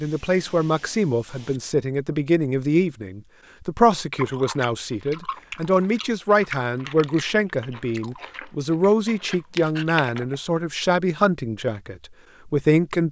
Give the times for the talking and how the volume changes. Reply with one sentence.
You can hear the talking from 0.0 to 13.0 s, at a steady volume.